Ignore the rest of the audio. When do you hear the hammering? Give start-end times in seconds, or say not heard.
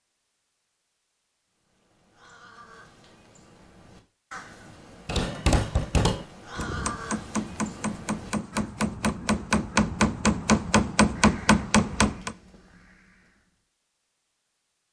5.0-12.3.